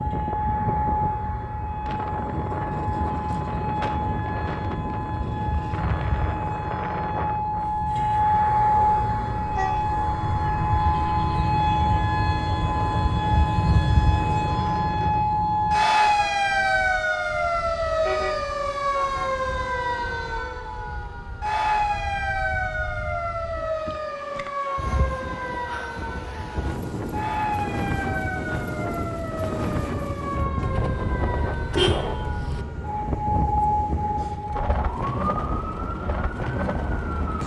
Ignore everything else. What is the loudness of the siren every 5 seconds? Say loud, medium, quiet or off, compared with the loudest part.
medium, loud, loud, loud, medium, medium, medium, medium.